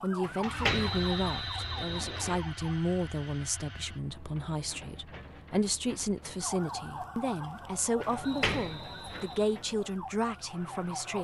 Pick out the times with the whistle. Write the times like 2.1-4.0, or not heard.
0.7-2.4, 8.4-9.4.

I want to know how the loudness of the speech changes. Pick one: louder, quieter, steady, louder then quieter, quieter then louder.
steady.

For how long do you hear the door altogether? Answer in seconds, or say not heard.
2 s.